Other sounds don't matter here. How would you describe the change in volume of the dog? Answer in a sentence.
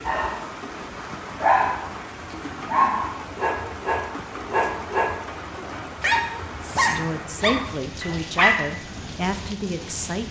The volume of the dog stays about the same.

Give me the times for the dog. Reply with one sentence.
The dog can be heard from 0.1 to 9.1 s.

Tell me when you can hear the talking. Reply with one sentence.
You can hear the talking from 6.8 to 10.2 s.